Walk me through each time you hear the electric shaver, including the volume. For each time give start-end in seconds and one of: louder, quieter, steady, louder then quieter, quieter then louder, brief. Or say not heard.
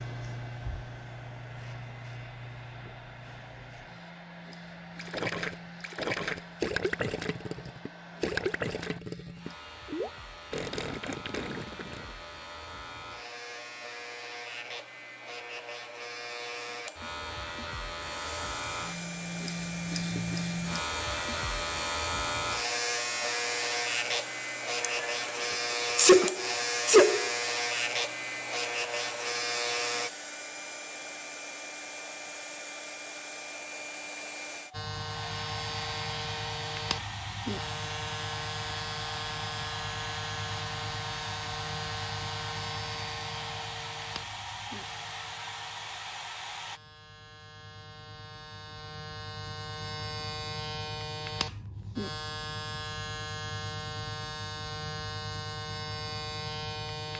0.0-30.1 louder
34.7-57.1 quieter then louder.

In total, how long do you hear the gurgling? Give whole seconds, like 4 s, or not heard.
7 s.